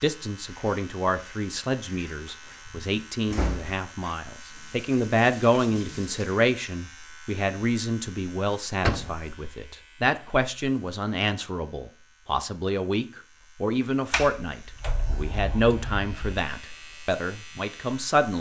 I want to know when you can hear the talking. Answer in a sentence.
The talking can be heard from 0.0 to 18.3 s.